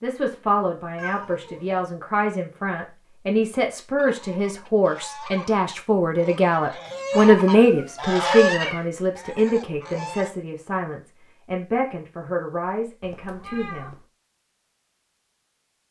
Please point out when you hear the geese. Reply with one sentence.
You can hear the geese from 4.0 to 10.3 s.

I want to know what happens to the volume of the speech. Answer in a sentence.
The volume of the speech goes up, then down.